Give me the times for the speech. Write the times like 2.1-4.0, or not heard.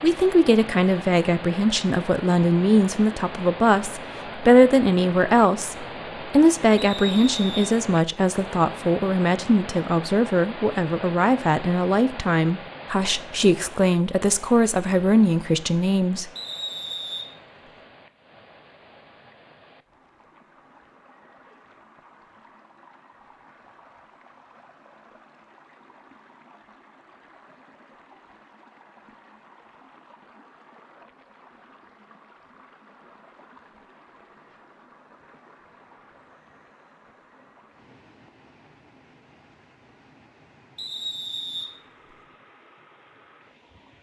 0.0-16.3.